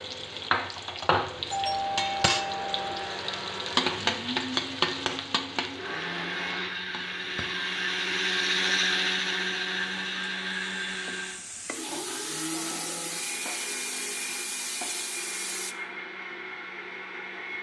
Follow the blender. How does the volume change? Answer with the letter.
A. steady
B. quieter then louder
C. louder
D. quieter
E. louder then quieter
E.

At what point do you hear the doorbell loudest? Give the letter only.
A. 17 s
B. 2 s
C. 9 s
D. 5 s
B.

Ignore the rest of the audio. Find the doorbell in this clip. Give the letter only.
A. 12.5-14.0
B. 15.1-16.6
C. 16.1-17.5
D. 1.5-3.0
D.